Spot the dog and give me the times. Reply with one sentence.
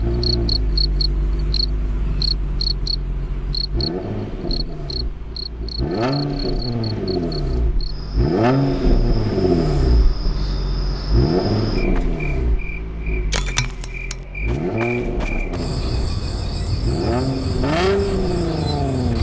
The dog can't be heard in this clip.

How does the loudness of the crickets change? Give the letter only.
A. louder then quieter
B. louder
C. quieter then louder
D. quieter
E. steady
C.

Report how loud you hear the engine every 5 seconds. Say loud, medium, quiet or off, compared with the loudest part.
medium, loud, loud, loud.